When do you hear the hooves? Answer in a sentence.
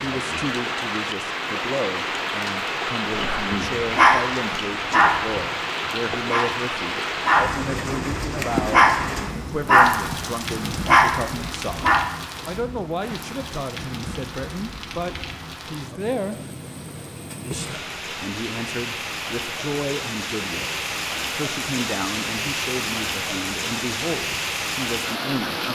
You can't hear the hooves here.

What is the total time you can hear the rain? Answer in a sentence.
The rain can be heard for 26 seconds in total.